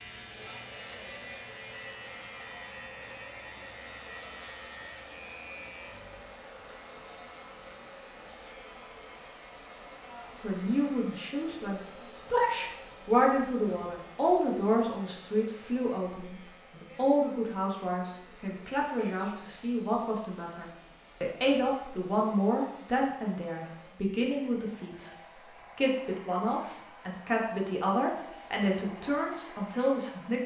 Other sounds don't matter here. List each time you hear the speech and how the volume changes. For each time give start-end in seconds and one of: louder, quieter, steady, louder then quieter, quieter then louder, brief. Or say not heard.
10.4-25.1 steady
25.8-30.4 steady.